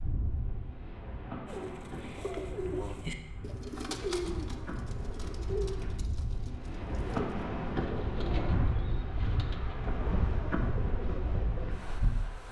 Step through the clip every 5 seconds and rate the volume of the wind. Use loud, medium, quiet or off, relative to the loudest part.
medium, loud, loud.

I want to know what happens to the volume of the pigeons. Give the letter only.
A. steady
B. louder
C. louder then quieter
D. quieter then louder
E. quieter
E.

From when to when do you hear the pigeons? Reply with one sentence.
The pigeons can be heard from 1.4 to 11.7 s.